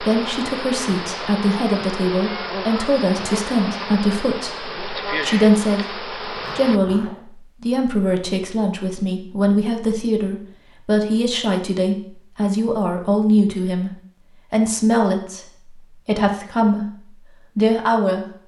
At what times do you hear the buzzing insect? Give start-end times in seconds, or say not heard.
0.0-6.8.